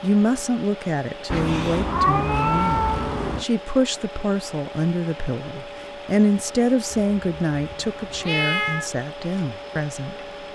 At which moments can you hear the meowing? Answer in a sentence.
You can hear the meowing from 1.3 to 3.5 s and from 6.9 to 8.9 s.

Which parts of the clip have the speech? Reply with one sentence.
The speech can be heard from 0.0 to 10.5 s.